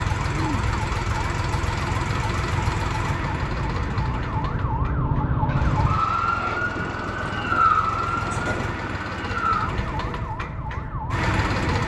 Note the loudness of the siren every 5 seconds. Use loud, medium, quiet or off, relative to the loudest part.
medium, loud, medium.